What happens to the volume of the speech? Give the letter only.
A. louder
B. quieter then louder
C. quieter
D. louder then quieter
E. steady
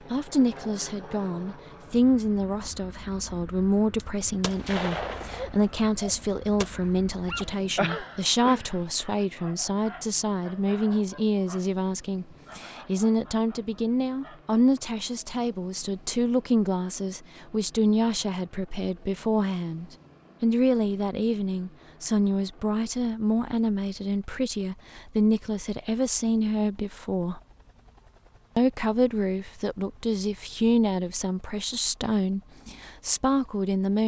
E.